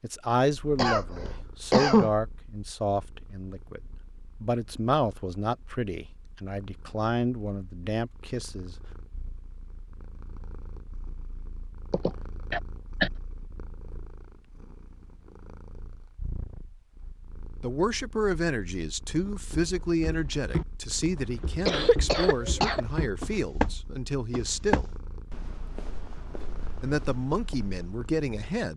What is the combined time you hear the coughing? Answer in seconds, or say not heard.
4 s.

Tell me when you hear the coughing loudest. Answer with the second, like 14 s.
2 s.